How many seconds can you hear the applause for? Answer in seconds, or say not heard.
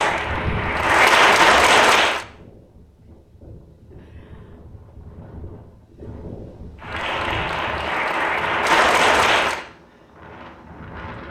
5 s.